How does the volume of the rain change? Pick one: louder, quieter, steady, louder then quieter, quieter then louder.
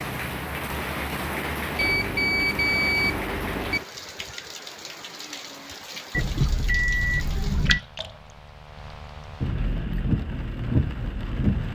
quieter then louder.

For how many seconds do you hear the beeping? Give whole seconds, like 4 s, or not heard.
4 s.